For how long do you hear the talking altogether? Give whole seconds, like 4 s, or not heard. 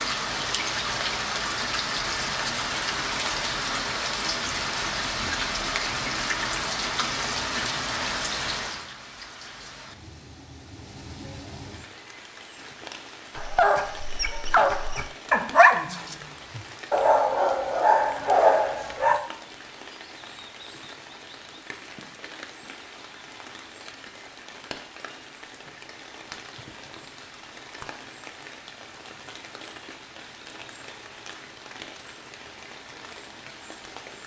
not heard.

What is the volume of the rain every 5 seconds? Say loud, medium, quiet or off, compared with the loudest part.
loud, loud, quiet, quiet, quiet, quiet, quiet.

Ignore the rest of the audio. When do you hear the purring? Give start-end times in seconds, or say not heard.
not heard.